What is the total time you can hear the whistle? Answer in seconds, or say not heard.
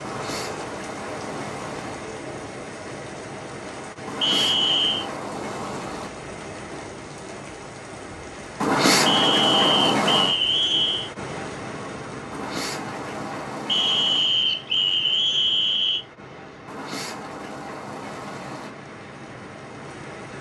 5 s.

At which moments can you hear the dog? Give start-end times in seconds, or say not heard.
not heard.